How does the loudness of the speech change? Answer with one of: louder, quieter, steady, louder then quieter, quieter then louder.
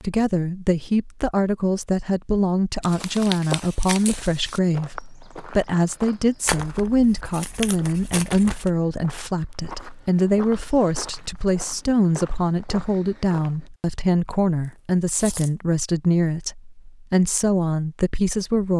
steady.